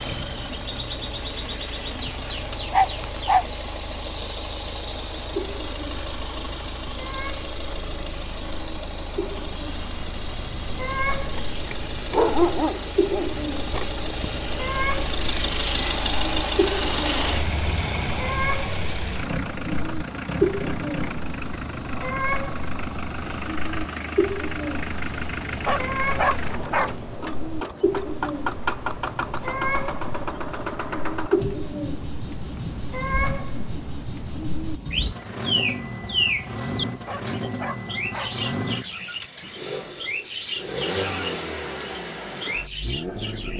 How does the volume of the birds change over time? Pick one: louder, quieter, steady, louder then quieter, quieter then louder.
louder.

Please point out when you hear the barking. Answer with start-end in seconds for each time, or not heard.
2.7-3.5, 12.1-13.4, 25.6-26.9, 37.0-38.4.